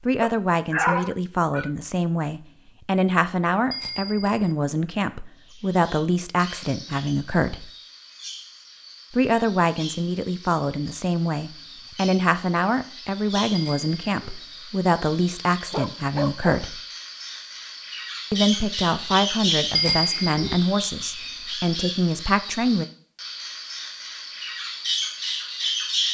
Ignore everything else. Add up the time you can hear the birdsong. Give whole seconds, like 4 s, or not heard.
21 s.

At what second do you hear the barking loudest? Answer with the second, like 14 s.
1 s.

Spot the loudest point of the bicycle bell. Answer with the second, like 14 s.
20 s.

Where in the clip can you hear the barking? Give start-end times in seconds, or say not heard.
0.2-1.7, 15.7-16.6.